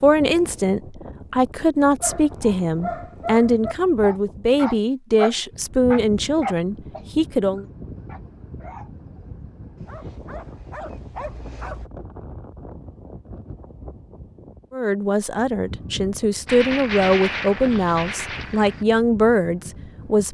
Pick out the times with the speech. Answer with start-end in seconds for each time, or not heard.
0.0-7.7, 14.7-20.2.